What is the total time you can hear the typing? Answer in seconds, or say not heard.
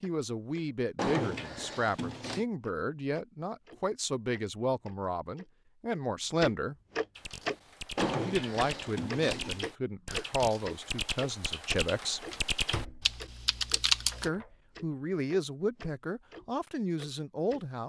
7 s.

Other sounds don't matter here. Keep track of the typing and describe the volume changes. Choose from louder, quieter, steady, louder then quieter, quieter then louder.
louder.